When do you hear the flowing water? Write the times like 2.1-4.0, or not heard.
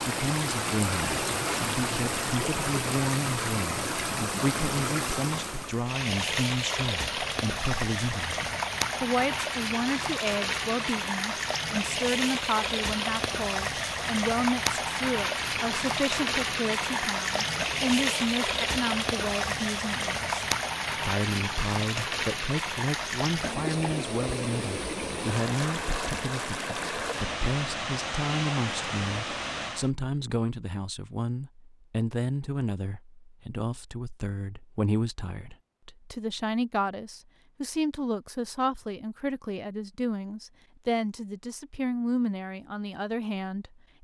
0.0-29.9.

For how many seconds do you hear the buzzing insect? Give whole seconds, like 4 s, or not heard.
not heard.